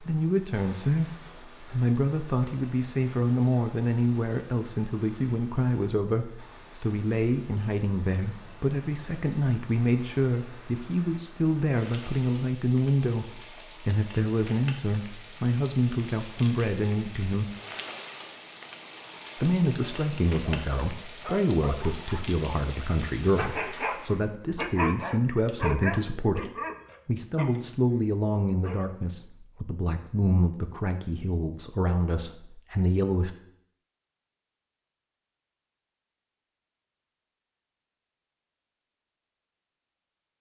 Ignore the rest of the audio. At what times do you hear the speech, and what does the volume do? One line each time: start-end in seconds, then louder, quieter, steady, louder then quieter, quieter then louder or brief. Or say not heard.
0.0-17.6 steady
19.4-33.4 steady.